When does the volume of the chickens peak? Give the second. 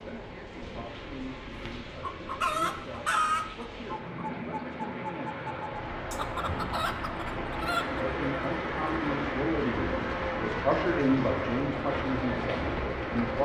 3 s.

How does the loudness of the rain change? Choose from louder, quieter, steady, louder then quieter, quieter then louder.
louder.